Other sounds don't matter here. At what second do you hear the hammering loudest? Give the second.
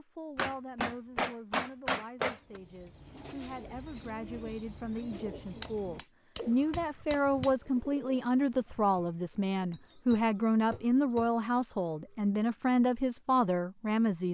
2 s.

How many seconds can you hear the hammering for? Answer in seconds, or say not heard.
6 s.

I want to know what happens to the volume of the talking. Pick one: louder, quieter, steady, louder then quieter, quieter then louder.
louder.